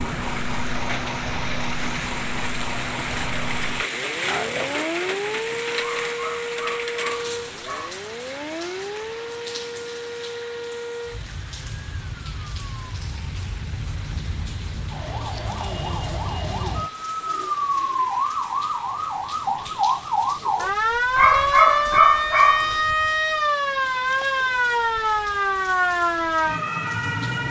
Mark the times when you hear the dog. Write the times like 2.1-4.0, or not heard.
5.8-8.0, 21.1-22.8.